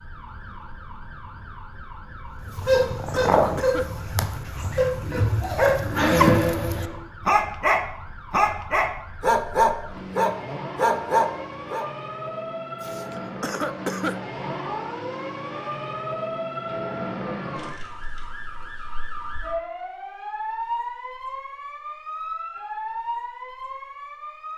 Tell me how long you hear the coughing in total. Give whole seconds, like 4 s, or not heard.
3 s.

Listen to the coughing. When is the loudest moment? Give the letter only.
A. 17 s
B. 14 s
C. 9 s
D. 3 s
B.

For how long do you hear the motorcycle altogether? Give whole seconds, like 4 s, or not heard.
2 s.